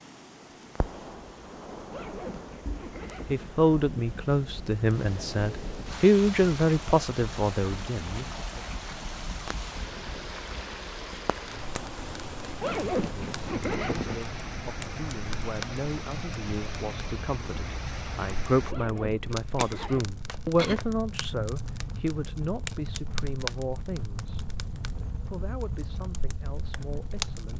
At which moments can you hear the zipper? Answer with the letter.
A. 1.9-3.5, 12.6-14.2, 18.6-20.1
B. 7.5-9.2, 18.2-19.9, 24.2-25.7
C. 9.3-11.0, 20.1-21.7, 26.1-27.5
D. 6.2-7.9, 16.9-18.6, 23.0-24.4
A.